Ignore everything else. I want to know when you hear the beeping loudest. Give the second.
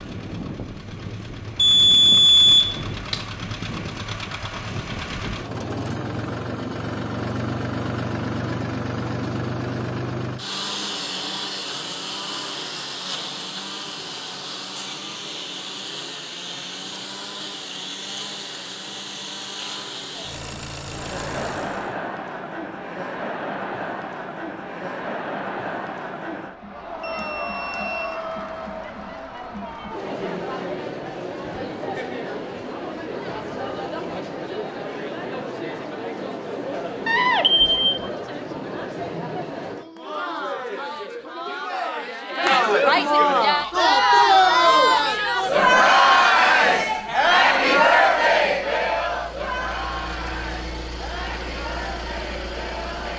2 s.